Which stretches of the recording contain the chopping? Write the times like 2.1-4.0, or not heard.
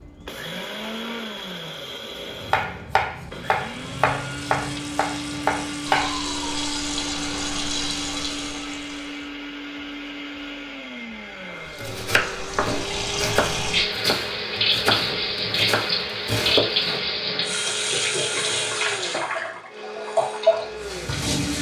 2.4-6.2, 11.5-17.0.